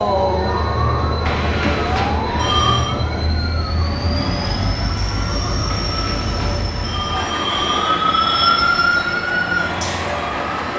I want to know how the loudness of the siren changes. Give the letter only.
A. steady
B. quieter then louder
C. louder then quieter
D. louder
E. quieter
B.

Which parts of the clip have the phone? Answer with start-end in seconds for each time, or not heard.
1.2-3.0, 5.7-7.9.